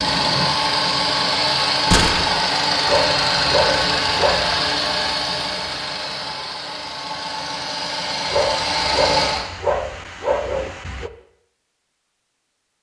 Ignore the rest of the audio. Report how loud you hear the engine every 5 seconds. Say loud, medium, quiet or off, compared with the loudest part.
loud, medium, off.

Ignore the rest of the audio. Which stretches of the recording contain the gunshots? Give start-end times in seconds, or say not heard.
1.9-2.4.